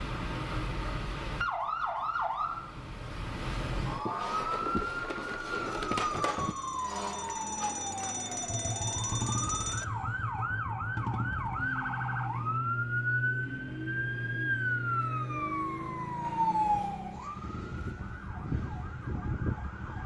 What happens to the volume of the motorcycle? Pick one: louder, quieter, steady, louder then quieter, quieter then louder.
quieter.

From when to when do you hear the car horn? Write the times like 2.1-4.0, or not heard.
not heard.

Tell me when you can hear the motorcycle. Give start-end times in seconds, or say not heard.
8.4-20.0.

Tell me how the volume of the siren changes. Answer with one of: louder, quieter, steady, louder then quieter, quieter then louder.
steady.